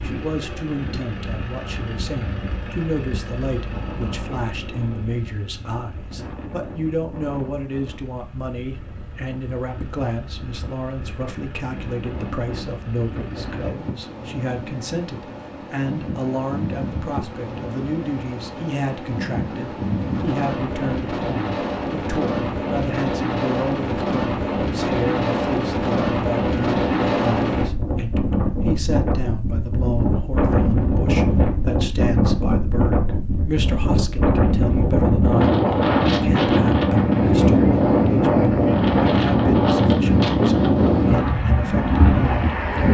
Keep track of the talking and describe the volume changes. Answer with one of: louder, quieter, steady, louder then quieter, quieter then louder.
steady.